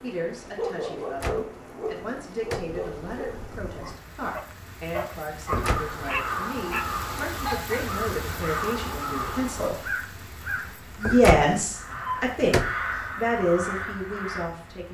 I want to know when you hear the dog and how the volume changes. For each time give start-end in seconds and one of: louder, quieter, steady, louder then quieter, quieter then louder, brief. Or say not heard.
0.6-7.8 quieter then louder.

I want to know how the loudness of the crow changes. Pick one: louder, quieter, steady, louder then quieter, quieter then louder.
steady.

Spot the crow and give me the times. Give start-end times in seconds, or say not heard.
5.5-14.5.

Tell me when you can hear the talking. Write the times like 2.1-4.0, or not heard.
0.0-9.8, 11.0-14.8.